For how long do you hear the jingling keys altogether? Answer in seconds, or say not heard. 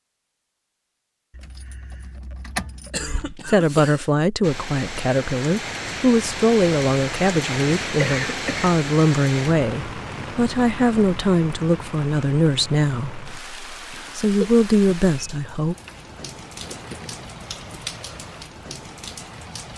3 s.